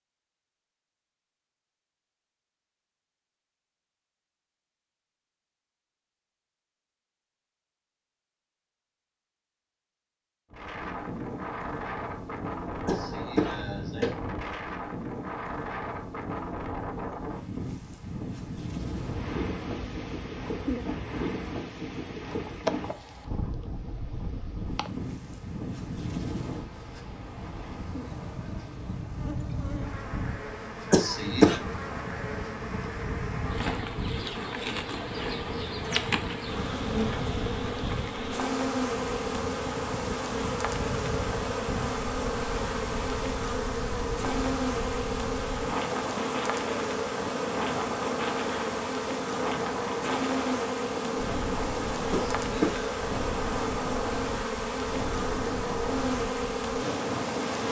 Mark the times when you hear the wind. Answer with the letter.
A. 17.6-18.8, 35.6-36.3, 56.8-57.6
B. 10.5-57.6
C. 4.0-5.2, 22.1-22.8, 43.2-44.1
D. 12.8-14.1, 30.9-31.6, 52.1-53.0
B.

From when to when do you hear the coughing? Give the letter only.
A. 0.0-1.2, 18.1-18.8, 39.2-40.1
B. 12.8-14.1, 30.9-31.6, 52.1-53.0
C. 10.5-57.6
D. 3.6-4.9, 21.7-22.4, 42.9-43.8
B.